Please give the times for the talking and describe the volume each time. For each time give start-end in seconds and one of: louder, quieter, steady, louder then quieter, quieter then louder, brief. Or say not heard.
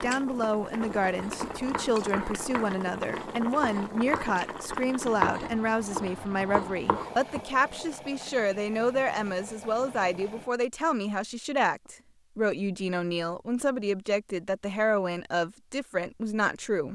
0.0-16.9 steady.